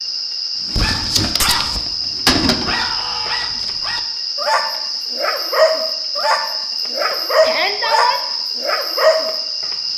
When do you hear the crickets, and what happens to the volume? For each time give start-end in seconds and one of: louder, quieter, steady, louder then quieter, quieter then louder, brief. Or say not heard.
0.0-9.9 steady.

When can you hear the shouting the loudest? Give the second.
8 s.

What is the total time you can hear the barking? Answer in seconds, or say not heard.
9 s.